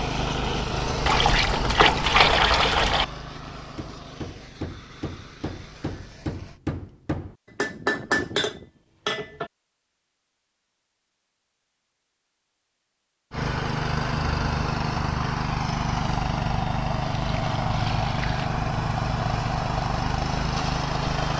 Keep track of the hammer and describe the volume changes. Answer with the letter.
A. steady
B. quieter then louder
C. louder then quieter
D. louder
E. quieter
D.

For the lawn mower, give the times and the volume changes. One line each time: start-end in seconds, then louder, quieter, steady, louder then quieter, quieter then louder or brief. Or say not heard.
0.0-6.6 quieter
13.3-21.3 steady.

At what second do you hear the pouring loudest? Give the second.
2 s.